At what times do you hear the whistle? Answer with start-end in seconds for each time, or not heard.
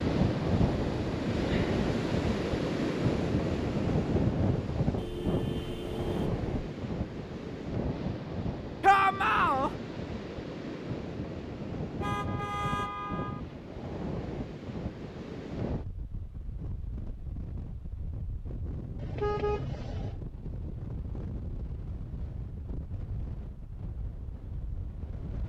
not heard.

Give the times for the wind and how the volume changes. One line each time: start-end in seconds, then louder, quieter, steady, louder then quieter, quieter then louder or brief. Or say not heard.
0.0-25.4 quieter.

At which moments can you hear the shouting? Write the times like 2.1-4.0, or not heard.
8.8-9.7.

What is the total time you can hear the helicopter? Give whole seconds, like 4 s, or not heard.
not heard.